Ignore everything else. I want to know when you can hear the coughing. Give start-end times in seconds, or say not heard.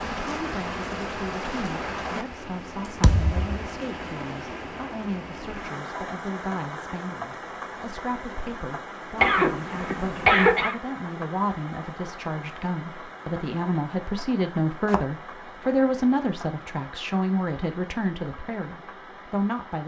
9.2-10.8.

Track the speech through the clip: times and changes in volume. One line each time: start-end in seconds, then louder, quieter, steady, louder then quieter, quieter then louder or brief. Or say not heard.
0.2-19.8 louder.